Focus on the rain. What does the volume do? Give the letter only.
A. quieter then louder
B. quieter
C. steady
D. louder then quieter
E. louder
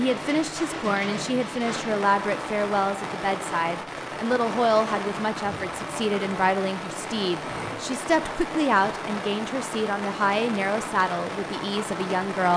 C.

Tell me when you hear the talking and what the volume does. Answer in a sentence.
The talking can be heard from 0.0 to 12.5 s, at a steady volume.